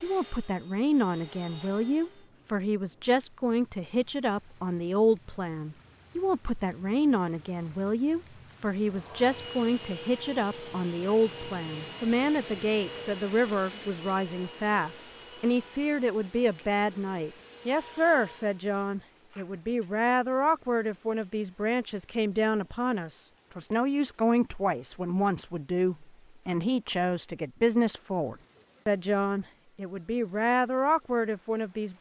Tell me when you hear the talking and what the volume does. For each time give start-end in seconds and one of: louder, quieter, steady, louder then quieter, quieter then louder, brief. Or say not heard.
0.0-31.9 steady.